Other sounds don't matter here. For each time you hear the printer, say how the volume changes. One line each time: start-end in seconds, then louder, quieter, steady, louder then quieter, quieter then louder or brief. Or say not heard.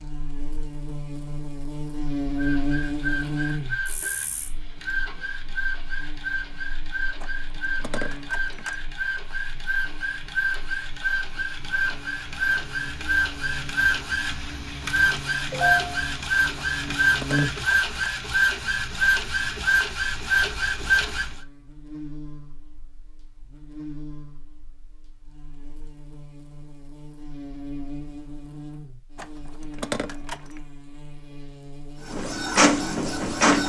2.4-21.4 louder
32.0-33.6 brief.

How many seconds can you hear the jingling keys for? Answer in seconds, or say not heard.
5 s.